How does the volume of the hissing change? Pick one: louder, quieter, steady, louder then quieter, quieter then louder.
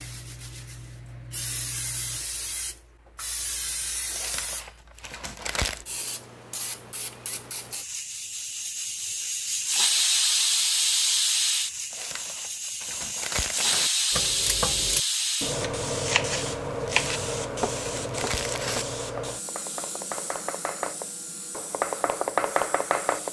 louder then quieter.